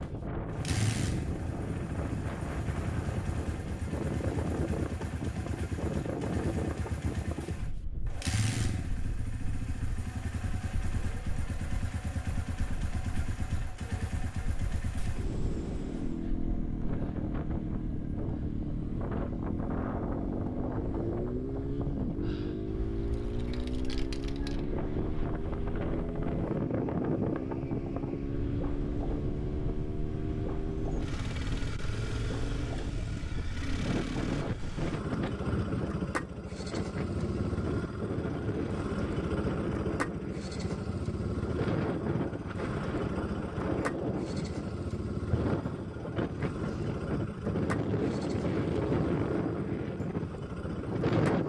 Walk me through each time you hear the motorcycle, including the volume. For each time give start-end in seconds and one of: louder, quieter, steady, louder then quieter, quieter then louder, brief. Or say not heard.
0.0-51.4 steady.